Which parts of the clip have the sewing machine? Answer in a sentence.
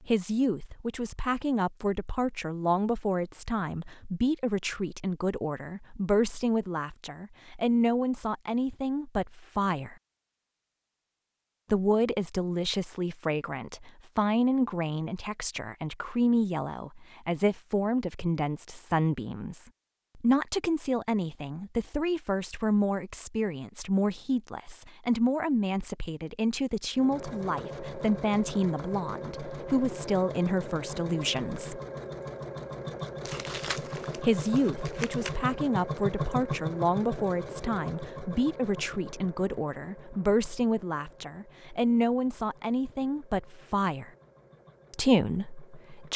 The sewing machine can be heard from 26.9 to 46.1 s.